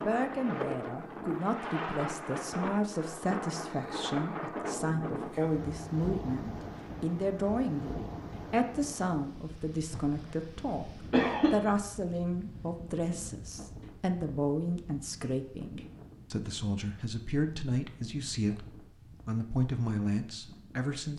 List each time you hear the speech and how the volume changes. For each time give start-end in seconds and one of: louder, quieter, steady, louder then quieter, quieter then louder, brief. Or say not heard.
0.0-21.1 steady.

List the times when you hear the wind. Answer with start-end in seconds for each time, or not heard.
0.0-20.9.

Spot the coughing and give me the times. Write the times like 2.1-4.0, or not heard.
11.1-11.6.